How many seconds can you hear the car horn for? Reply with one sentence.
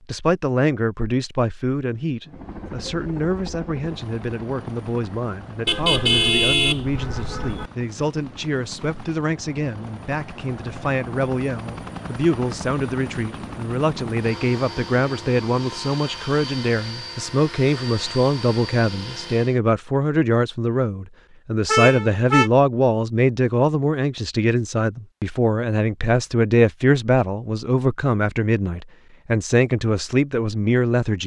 The car horn can be heard for 3 seconds in total.